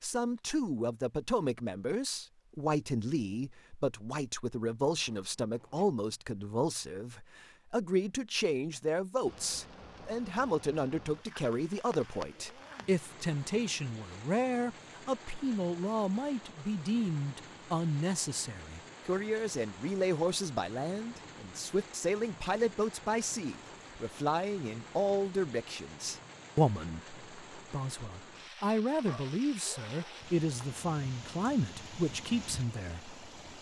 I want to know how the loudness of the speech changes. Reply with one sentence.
The loudness of the speech stays about the same.